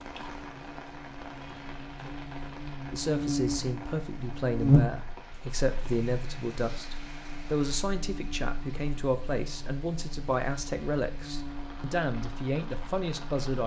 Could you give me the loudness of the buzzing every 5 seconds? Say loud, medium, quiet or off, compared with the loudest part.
loud, quiet, quiet.